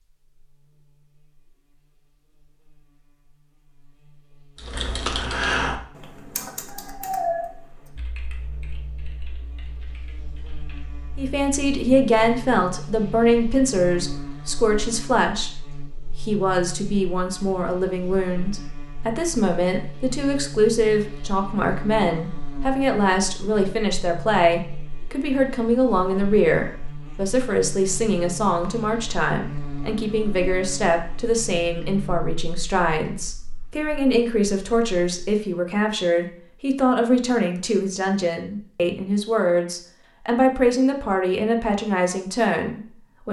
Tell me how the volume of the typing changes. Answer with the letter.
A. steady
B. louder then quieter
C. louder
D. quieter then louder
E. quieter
E.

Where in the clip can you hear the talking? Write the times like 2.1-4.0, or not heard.
11.2-15.5, 16.2-43.2.